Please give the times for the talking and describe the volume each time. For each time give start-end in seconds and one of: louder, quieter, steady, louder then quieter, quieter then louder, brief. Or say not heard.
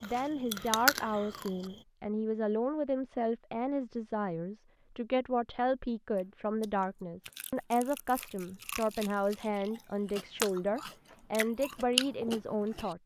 0.0-13.0 steady.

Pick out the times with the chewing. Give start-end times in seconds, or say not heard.
0.0-1.8, 6.2-12.9.